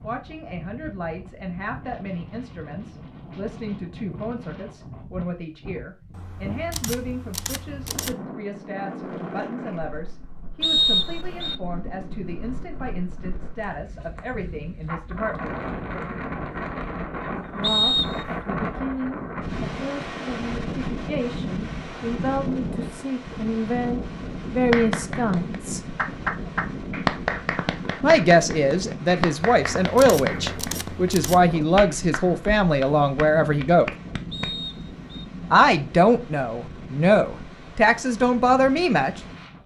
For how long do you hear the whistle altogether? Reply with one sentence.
You can hear the whistle for 3 seconds altogether.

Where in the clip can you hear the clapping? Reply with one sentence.
You can hear the clapping from 24.7 to 34.5 s.